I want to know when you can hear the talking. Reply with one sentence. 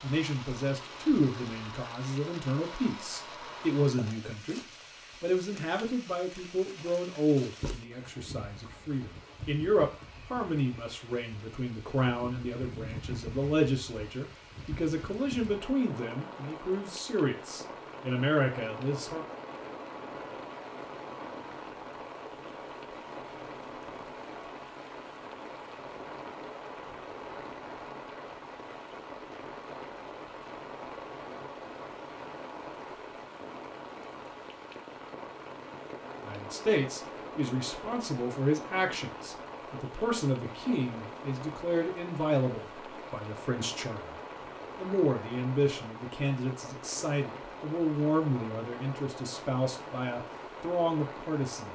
You can hear the talking from 0.0 to 19.2 s and from 36.2 to 51.7 s.